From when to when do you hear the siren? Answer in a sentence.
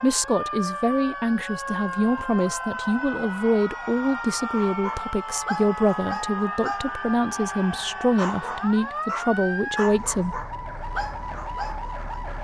The siren can be heard from 0.0 to 12.3 s.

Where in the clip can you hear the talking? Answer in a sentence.
The talking can be heard from 0.0 to 10.3 s.